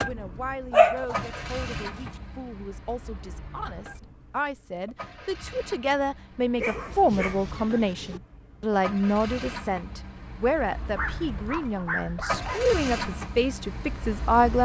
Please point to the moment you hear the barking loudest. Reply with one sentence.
The volume of the barking peaks at 1 second.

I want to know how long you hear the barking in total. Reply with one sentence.
The barking can be heard for 5 seconds in total.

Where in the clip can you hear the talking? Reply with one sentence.
You can hear the talking from 0.0 to 14.6 s.